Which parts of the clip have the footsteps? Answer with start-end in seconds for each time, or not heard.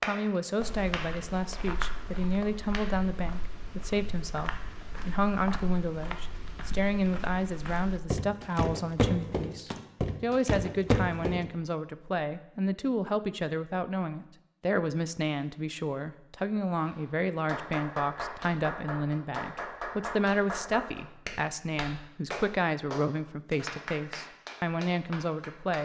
0.6-11.4.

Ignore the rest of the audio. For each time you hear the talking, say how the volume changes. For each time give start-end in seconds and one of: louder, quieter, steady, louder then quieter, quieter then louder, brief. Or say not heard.
0.0-25.8 steady.